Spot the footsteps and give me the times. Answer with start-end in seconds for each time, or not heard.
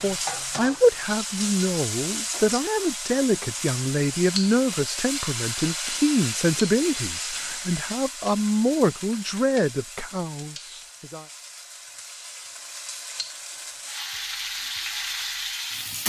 not heard.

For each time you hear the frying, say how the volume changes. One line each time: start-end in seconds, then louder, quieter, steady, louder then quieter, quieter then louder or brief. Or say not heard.
0.0-16.0 quieter then louder.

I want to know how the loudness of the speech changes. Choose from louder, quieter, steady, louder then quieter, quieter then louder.
steady.